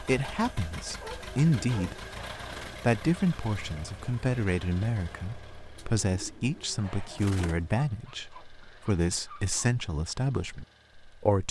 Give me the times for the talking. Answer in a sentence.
The talking can be heard from 0.0 to 2.0 s and from 2.8 to 11.4 s.